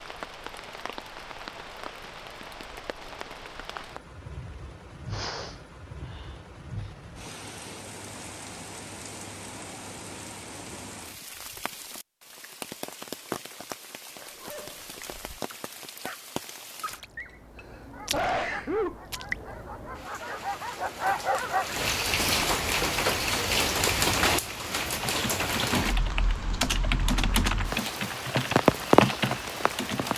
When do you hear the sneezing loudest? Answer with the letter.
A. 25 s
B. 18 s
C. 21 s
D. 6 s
B.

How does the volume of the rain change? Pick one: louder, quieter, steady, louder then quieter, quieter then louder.
louder.